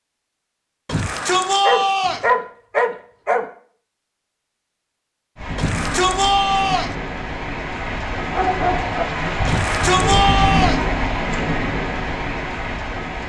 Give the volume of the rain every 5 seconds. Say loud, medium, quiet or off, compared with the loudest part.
off, loud, loud.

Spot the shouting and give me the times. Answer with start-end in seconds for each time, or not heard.
0.8-2.2, 5.5-7.0, 9.4-10.8.